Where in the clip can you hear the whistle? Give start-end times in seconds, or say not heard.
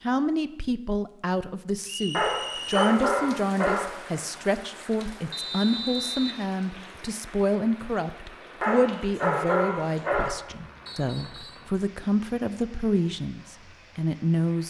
1.9-3.0, 5.3-6.4, 10.8-11.7.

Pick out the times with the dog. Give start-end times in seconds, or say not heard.
2.1-3.9, 8.6-10.3.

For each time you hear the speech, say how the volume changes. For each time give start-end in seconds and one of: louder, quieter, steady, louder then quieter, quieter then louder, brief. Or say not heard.
0.0-14.6 steady.